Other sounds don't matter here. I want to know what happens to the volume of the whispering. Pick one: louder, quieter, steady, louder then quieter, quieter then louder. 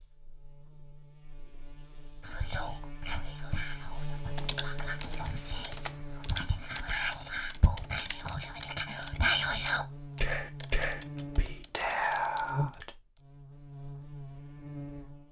louder.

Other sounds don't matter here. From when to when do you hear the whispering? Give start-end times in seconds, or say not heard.
2.2-12.9.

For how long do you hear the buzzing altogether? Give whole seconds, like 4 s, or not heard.
15 s.